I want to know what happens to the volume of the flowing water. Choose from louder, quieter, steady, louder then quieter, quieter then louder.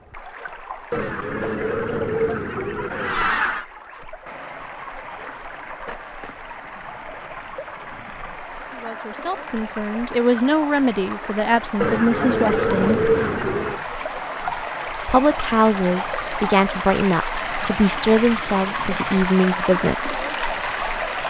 louder.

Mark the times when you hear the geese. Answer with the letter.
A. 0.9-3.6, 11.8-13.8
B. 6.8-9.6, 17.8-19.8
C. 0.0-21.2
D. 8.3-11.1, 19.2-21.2
A.